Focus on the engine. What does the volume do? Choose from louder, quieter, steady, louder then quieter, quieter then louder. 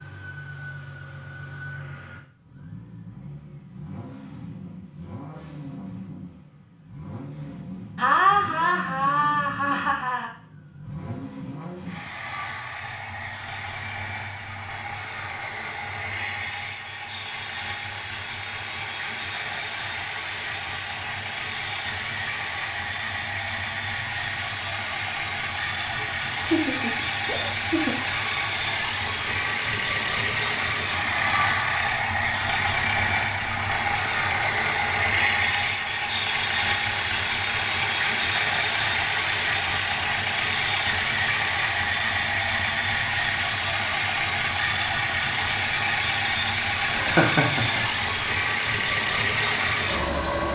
louder.